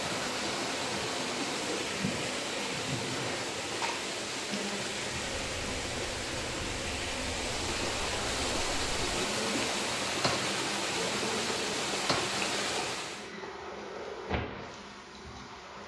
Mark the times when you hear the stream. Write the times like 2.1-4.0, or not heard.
0.0-13.3.